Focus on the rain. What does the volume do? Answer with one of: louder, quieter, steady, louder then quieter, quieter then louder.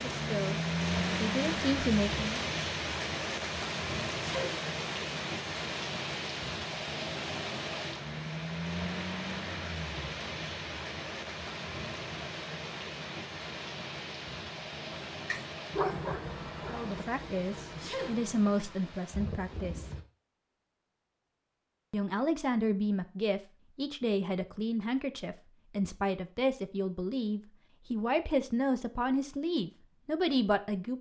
quieter.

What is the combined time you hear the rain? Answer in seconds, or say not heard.
20 s.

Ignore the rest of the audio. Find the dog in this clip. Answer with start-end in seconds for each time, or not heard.
14.9-16.9.